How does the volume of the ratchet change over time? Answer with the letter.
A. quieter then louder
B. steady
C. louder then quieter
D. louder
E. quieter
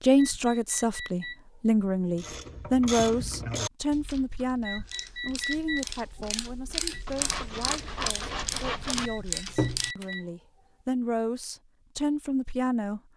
A.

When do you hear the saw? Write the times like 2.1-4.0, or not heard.
7.0-9.1.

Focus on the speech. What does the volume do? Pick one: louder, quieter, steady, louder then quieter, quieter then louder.
quieter then louder.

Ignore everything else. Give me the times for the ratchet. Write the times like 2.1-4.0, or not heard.
2.1-10.2.